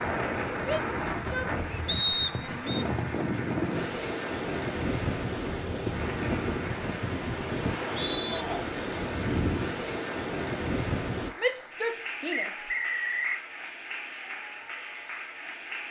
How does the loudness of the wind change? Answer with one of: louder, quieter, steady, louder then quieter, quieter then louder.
steady.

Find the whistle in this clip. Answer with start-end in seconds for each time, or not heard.
1.9-2.9, 7.7-8.4, 12.3-13.4.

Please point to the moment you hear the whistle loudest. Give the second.
2 s.